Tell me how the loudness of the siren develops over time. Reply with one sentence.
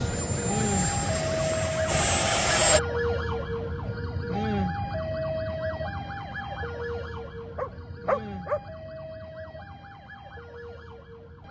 The volume of the siren goes down.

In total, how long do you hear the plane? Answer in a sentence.
You can hear the plane for 3 seconds altogether.